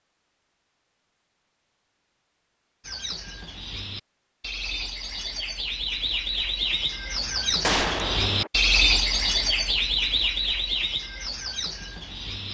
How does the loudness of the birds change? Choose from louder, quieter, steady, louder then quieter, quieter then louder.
louder then quieter.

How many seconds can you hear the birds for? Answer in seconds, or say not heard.
10 s.